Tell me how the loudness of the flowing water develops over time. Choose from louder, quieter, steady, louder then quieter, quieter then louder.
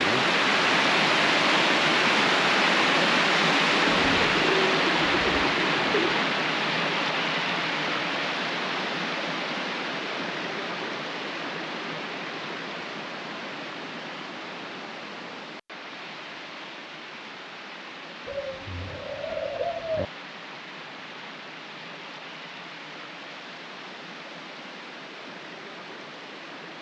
quieter.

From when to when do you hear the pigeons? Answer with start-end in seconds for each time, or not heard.
3.9-6.2, 18.2-20.1.